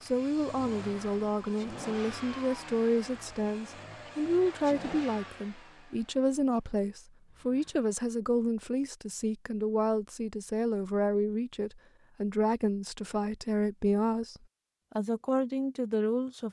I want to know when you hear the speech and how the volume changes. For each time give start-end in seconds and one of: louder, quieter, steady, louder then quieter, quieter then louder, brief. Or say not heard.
0.0-16.4 steady.